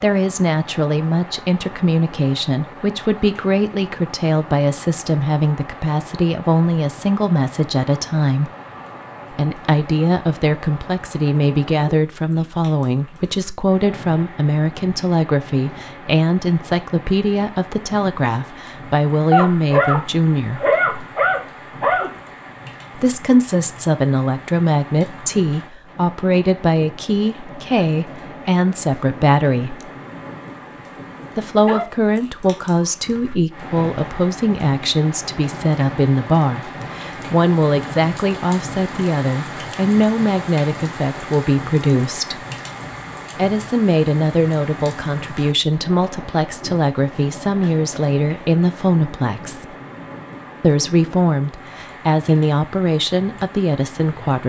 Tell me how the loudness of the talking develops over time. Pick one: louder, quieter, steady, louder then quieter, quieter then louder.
steady.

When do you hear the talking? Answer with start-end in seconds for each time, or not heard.
0.0-8.5, 9.3-20.6, 22.9-29.9, 31.4-42.5, 43.4-49.8, 50.6-54.4.